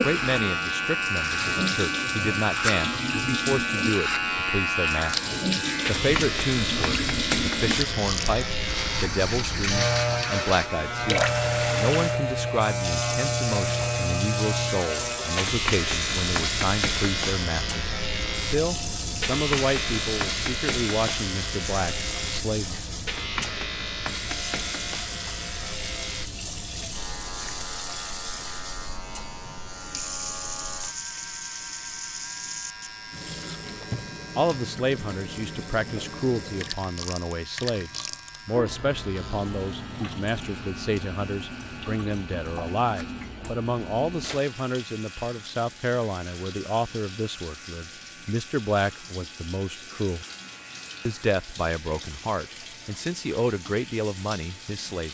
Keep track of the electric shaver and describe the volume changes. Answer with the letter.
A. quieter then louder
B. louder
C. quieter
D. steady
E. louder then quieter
C.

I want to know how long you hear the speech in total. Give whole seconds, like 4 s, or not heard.
42 s.